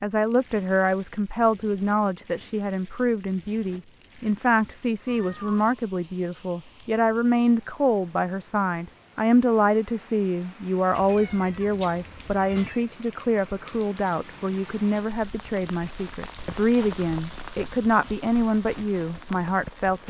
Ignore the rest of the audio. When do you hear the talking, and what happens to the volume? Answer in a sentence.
The talking can be heard from 0.0 to 20.0 s, at a steady volume.